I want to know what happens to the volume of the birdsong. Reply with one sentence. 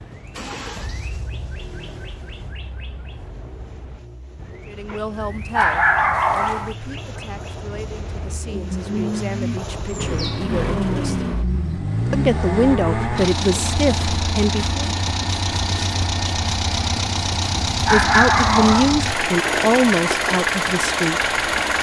The loudness of the birdsong goes up.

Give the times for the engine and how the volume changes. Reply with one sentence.
You can hear the engine from 0.0 to 21.7 s, getting louder.